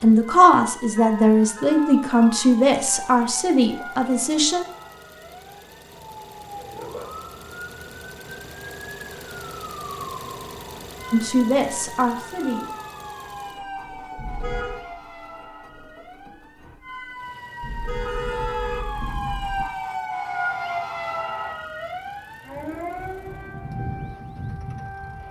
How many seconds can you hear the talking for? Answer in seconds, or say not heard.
6 s.